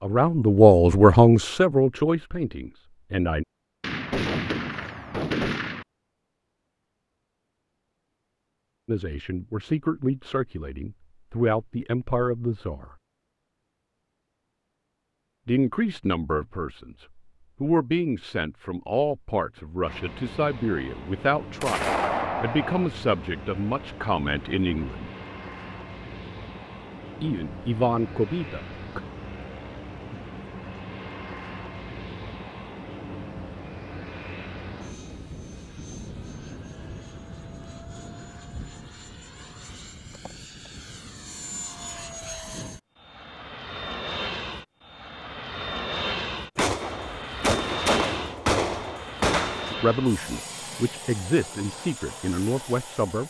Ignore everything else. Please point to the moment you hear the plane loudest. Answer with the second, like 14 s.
46 s.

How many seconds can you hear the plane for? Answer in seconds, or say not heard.
33 s.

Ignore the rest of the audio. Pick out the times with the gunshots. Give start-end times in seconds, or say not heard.
3.8-5.8, 21.6-22.9, 46.5-49.8.